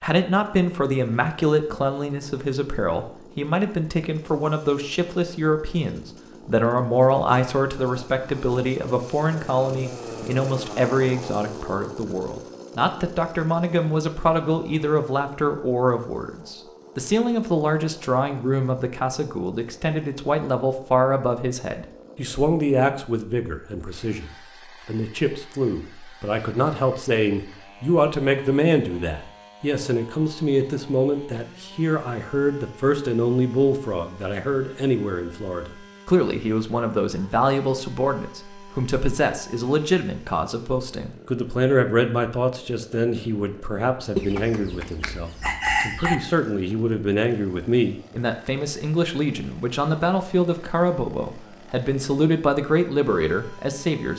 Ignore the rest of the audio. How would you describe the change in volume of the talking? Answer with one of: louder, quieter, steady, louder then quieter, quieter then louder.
steady.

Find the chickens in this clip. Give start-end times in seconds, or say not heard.
44.1-46.1.